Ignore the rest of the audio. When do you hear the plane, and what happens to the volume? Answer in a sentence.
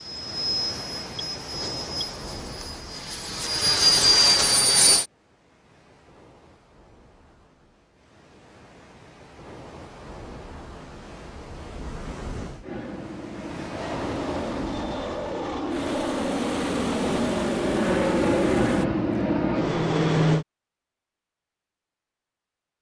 The plane can be heard from 0.0 to 5.0 s, getting quieter then louder; and from 12.6 to 20.4 s, getting louder.